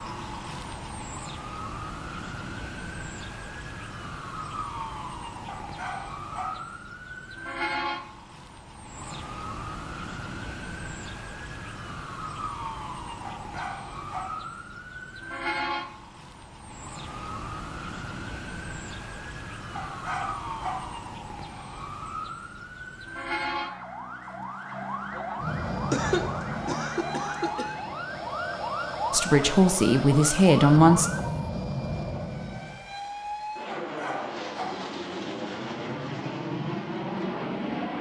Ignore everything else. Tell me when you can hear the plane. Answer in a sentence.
You can hear the plane from 25.4 to 37.9 s.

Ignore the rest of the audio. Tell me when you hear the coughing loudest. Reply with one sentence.
The loudest moment of the coughing is at 26 seconds.